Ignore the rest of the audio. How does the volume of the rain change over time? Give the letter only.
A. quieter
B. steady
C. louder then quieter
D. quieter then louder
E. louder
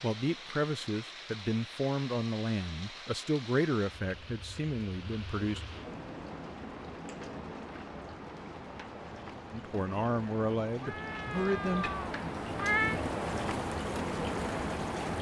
E.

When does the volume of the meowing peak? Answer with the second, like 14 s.
13 s.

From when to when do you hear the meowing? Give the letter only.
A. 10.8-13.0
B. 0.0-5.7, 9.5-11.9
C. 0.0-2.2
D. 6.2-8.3
A.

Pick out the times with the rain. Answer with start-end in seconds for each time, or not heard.
0.0-15.1.